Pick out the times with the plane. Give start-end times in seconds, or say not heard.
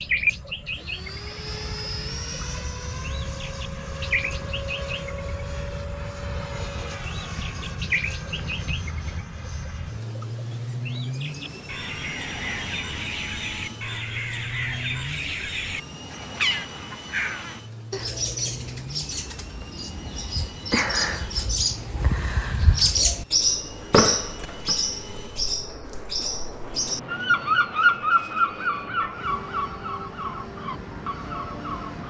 0.0-32.0.